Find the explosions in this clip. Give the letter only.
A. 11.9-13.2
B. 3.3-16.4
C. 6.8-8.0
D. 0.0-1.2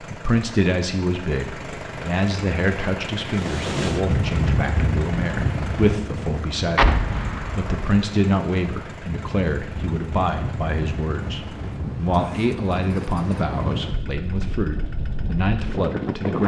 C.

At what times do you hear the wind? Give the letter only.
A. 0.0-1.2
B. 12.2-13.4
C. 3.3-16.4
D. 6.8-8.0
C.